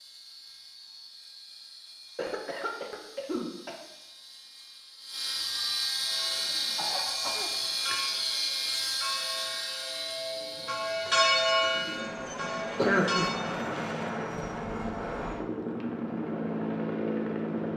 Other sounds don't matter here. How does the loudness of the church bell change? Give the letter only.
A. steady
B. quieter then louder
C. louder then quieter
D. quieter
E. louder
C.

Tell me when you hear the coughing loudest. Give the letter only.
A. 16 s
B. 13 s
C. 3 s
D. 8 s
B.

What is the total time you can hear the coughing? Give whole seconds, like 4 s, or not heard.
4 s.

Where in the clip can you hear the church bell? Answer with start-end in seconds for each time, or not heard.
6.0-13.5.